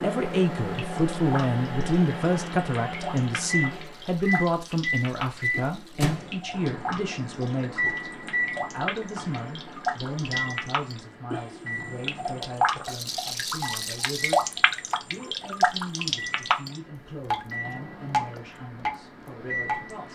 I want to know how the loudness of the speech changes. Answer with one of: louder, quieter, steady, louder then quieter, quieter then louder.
quieter.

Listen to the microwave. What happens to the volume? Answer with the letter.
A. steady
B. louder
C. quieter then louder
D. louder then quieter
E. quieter
C.